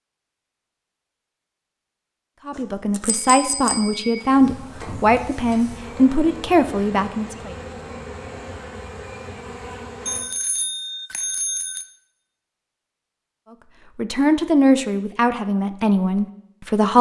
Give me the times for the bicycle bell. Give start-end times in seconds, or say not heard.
2.5-4.3, 10.1-11.8.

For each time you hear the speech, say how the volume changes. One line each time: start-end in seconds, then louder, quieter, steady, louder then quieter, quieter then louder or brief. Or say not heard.
2.5-7.5 steady
13.9-16.9 brief.